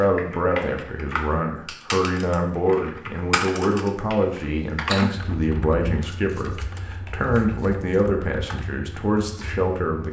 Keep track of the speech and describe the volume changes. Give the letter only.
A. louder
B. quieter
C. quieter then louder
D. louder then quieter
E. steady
E.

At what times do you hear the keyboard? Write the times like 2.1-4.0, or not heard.
0.0-10.0.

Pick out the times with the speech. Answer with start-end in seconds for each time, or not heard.
0.0-10.0.